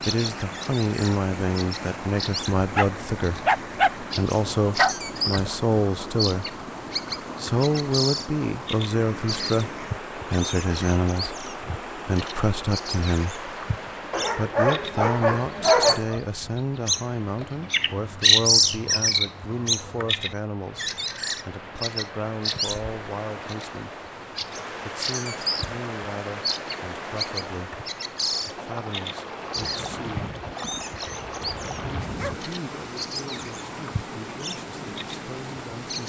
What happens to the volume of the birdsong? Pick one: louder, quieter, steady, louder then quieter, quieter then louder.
louder then quieter.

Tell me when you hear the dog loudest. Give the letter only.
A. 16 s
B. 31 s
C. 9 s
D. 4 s
A.